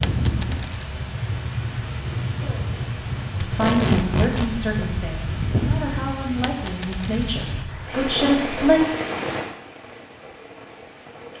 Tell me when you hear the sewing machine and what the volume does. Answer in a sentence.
You can't hear the sewing machine here.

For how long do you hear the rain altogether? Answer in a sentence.
You can hear the rain for 11 seconds altogether.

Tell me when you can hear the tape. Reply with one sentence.
The tape can be heard from 3.4 to 4.5 s.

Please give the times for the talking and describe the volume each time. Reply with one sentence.
You can hear the talking from 3.5 to 8.8 s, getting quieter then louder.